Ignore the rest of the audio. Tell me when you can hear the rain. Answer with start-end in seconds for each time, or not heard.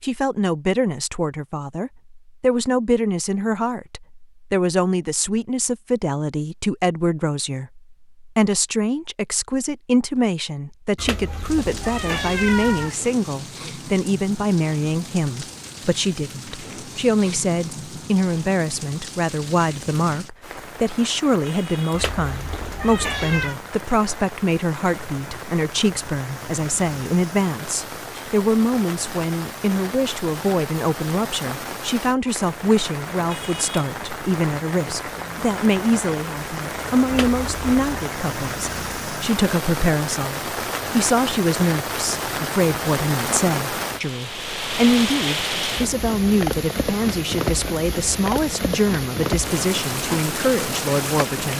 11.4-51.5.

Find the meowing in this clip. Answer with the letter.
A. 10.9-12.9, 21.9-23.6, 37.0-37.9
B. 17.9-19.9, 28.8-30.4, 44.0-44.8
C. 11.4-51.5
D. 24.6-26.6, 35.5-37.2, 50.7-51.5
A.